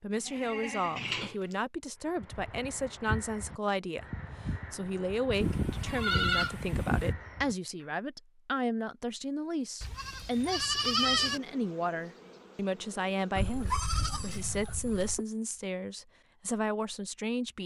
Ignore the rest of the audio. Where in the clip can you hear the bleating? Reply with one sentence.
You can hear the bleating from 0.1 to 1.6 s, from 5.4 to 7.2 s, from 9.8 to 11.4 s and from 13.3 to 15.2 s.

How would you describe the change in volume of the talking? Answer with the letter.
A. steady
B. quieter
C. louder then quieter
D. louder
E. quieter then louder
A.